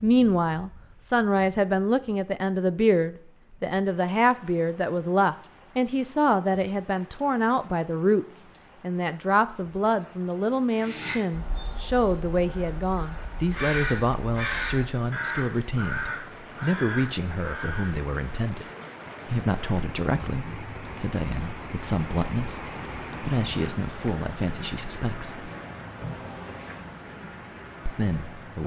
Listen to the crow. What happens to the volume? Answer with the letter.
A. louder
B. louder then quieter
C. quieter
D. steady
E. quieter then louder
B.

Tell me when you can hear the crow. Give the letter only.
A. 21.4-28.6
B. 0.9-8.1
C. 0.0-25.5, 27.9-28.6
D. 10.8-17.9
D.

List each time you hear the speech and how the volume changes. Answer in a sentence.
You can hear the speech from 0.0 to 25.5 s, getting quieter; and briefly from 27.9 to 28.6 s.